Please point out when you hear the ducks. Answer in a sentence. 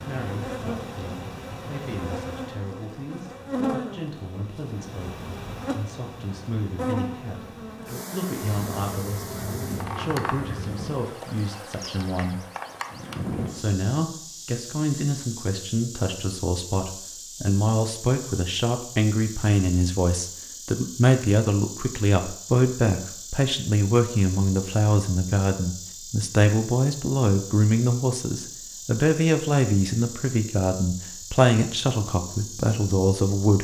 The ducks can be heard from 8.5 to 10.9 s.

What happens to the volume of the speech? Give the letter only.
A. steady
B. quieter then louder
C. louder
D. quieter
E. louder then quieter
C.